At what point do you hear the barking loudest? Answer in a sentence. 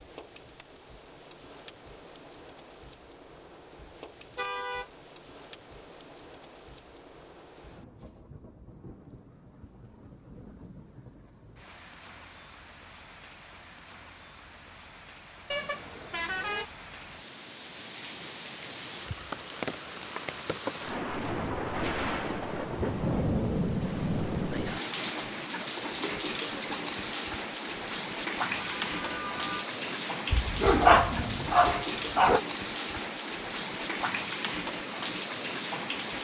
The volume of the barking peaks at 31 seconds.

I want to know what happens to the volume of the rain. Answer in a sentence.
The volume of the rain goes up.